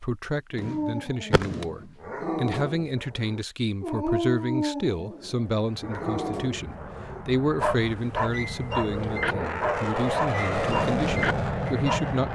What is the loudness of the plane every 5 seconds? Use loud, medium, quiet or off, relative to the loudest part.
off, medium, loud.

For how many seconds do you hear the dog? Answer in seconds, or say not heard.
12 s.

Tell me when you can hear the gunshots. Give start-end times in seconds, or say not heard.
0.6-1.8.